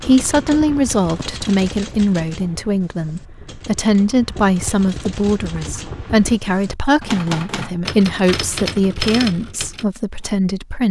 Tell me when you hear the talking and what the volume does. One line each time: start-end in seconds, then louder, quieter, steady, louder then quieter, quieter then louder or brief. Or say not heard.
0.1-10.8 steady.